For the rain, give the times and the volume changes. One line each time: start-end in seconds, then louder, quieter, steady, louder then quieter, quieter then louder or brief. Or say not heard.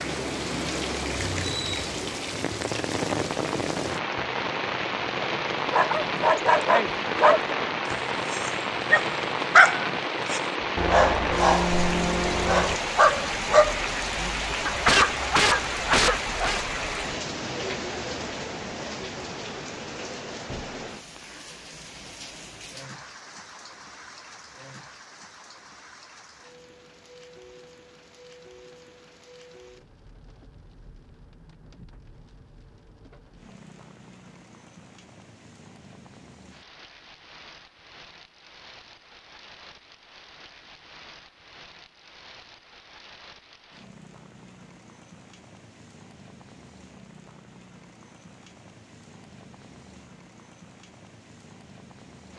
0.0-52.3 quieter.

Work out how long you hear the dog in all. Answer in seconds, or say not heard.
11 s.